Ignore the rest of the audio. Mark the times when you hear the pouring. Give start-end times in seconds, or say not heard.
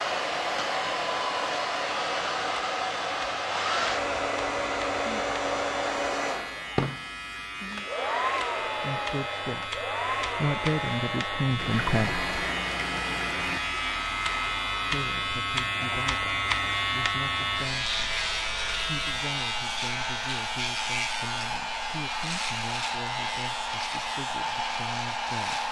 11.6-13.6.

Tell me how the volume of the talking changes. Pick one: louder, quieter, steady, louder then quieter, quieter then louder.
quieter.